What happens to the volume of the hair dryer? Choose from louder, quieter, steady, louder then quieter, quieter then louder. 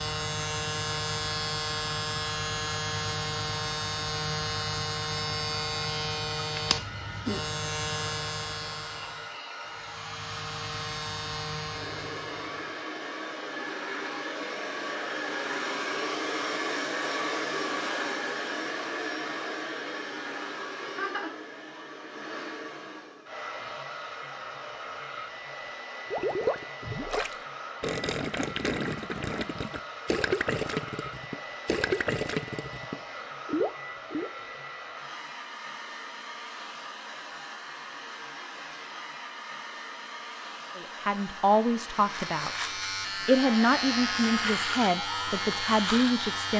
louder then quieter.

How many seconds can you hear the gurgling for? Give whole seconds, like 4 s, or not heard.
8 s.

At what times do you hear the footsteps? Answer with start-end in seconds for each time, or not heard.
not heard.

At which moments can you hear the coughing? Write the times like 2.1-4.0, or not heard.
not heard.